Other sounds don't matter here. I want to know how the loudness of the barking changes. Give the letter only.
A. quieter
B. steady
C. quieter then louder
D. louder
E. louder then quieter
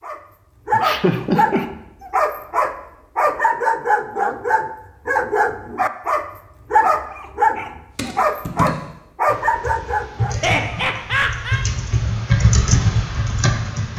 B.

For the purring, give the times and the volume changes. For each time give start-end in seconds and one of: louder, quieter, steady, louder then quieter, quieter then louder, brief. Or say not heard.
not heard.